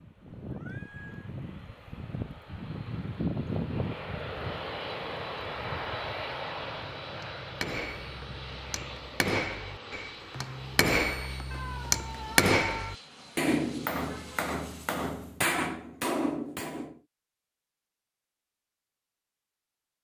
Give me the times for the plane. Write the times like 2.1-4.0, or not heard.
0.0-15.4.